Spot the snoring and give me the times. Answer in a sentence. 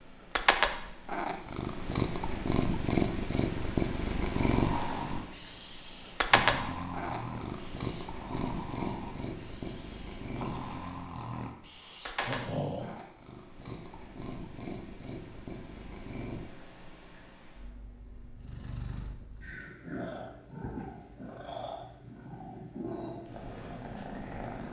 The snoring can be heard from 4.5 to 13.1 s.